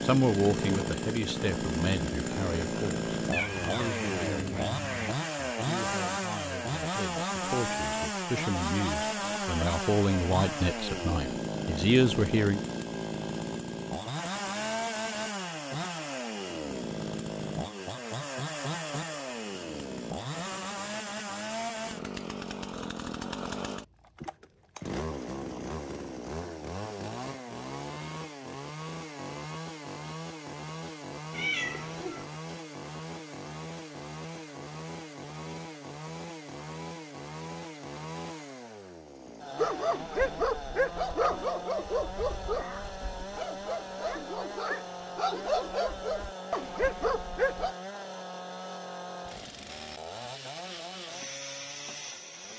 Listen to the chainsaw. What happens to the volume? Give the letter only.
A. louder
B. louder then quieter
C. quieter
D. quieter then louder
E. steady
C.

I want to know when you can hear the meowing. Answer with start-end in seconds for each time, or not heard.
3.3-5.1, 31.3-32.2, 42.5-43.2.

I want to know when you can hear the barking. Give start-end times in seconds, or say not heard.
39.5-47.8.